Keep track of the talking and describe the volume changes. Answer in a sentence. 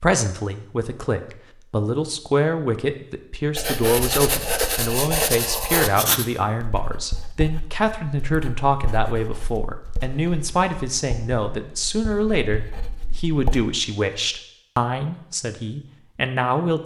The loudness of the talking stays about the same.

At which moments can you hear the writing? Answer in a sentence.
You can hear the writing from 3.5 to 13.7 s.